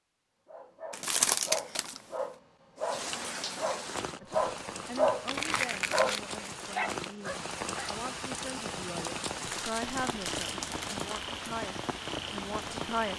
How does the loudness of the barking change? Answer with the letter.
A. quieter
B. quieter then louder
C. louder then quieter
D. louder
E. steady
C.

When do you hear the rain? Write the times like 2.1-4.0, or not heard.
2.8-13.1.